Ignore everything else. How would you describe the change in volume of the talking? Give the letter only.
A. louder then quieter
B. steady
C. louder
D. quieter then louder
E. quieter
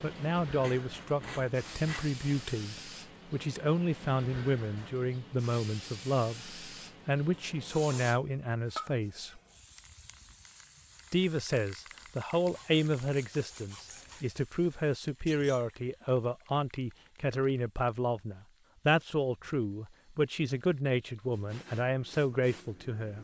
B.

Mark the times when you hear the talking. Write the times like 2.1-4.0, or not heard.
0.0-9.4, 11.1-23.1.